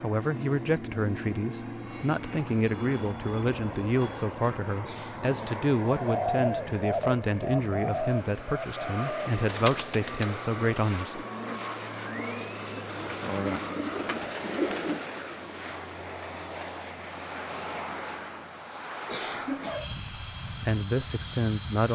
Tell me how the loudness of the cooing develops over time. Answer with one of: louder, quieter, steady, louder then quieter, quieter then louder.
quieter then louder.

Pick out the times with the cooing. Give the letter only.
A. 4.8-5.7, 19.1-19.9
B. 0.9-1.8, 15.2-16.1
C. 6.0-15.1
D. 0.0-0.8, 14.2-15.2
C.